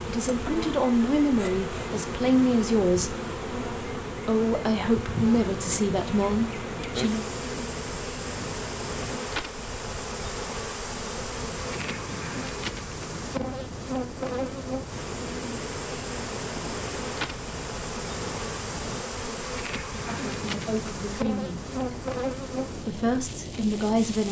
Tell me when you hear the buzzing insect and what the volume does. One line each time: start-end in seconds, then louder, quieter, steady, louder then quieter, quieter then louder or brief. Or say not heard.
0.0-24.2 steady.